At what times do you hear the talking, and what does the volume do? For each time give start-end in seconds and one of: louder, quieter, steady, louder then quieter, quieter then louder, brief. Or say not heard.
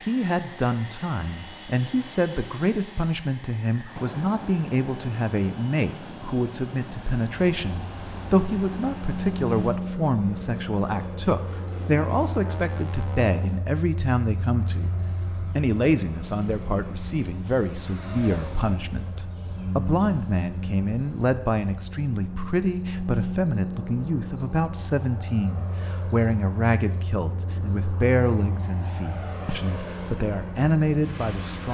0.1-14.9 steady
15.6-31.6 steady.